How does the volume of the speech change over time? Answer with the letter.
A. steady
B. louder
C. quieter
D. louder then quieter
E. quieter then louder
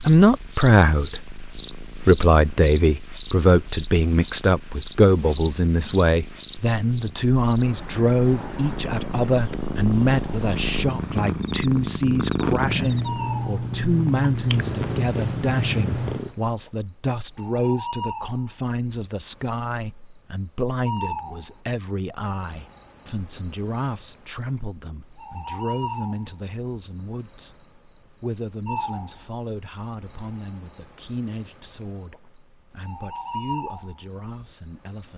C.